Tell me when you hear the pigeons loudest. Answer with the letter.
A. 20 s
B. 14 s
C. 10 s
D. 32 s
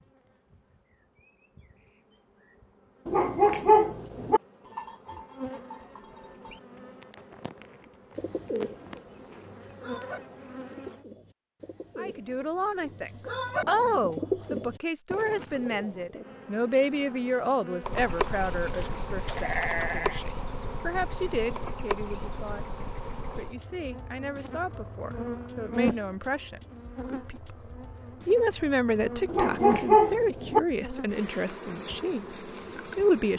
B.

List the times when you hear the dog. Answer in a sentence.
The dog can be heard from 3.0 to 4.4 s and from 29.2 to 30.6 s.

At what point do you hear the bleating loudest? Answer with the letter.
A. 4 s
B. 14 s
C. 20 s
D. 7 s
C.